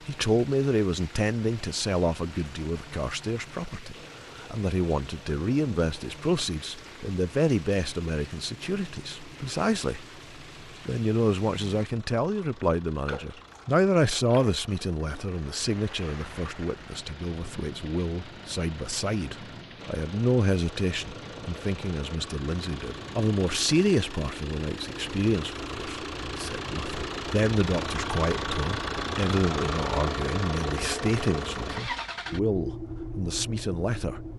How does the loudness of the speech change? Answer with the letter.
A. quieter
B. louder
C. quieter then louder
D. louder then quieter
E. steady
E.